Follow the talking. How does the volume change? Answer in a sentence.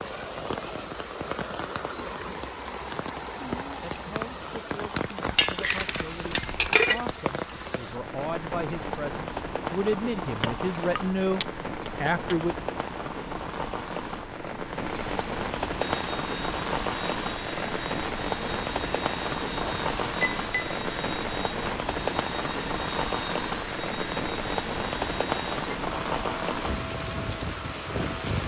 The loudness of the talking goes up.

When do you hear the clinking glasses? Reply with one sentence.
You can hear the clinking glasses from 5.2 to 7.0 s, from 10.4 to 12.3 s and from 19.6 to 20.7 s.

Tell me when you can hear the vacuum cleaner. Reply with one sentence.
The vacuum cleaner can be heard from 15.8 to 28.4 s.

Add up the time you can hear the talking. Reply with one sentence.
You can hear the talking for 9 seconds altogether.